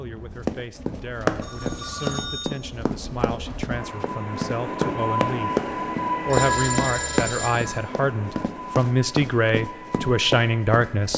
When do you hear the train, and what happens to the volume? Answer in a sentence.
You can hear the train from 0.0 to 11.1 s, getting louder then quieter.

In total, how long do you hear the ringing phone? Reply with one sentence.
The ringing phone can be heard for 3 seconds in total.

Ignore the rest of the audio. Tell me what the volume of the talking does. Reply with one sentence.
The volume of the talking goes up.